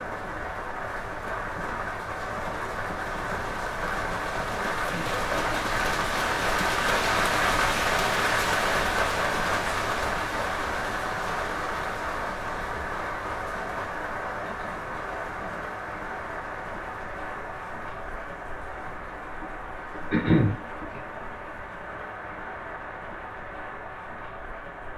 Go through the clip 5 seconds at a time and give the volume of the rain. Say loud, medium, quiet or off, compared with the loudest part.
medium, loud, medium, medium, quiet.